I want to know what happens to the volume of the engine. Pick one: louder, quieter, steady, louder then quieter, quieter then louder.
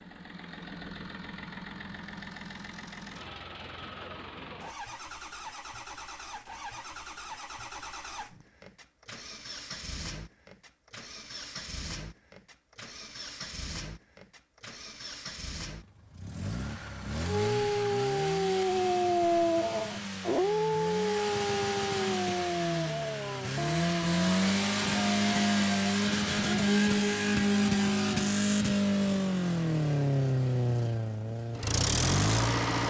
louder.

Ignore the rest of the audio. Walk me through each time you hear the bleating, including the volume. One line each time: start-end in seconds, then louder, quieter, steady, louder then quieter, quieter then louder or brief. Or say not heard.
not heard.